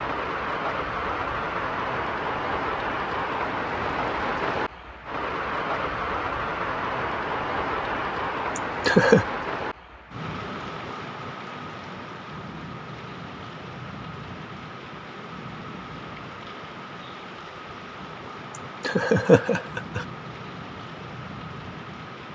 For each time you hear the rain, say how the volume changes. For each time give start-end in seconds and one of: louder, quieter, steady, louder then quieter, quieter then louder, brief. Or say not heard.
0.0-22.3 quieter.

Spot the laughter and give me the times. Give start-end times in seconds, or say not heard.
8.6-9.2, 18.8-20.1.